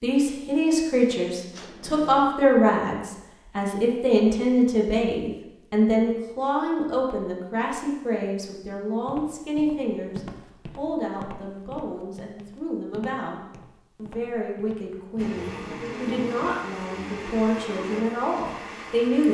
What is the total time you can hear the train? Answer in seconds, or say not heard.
4 s.